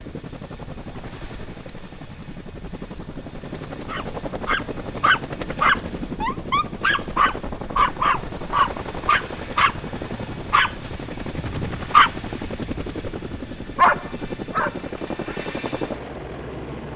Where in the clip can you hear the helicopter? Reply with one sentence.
You can hear the helicopter from 0.0 to 16.9 s.